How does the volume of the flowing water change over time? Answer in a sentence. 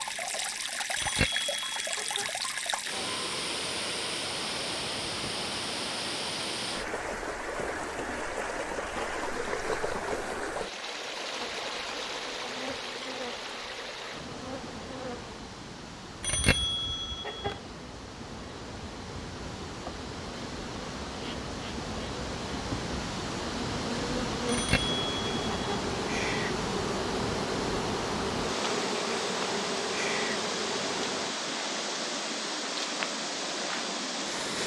The loudness of the flowing water goes down, then up.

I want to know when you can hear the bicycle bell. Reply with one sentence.
You can hear the bicycle bell from 0.9 to 2.2 s, from 16.2 to 17.5 s and from 24.4 to 25.8 s.